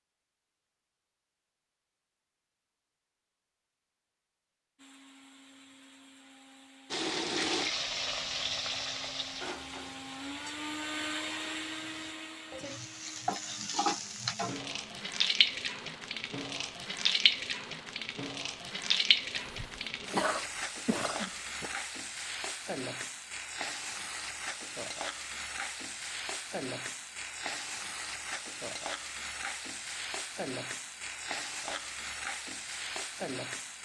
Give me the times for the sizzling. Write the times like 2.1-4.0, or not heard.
6.9-33.8.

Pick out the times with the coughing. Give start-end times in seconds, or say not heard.
19.3-21.8.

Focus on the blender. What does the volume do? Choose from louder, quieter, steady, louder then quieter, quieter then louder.
louder then quieter.